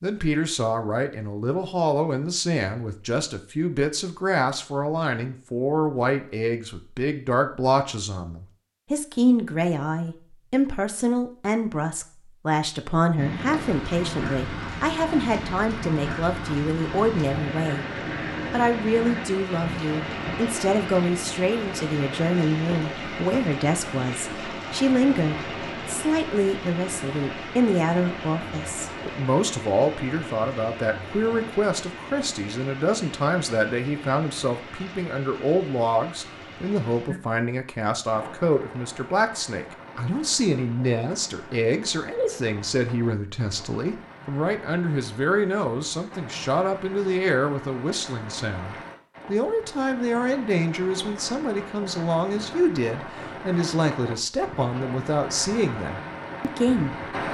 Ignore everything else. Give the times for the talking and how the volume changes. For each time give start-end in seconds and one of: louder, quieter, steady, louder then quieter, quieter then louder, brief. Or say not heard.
0.0-17.9 steady
18.5-57.0 steady.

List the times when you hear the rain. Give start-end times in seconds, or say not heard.
13.2-57.2.